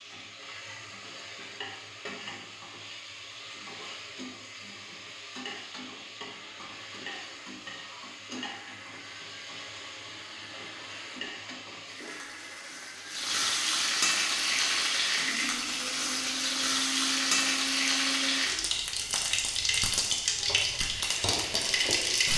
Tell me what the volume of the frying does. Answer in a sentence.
The loudness of the frying goes up.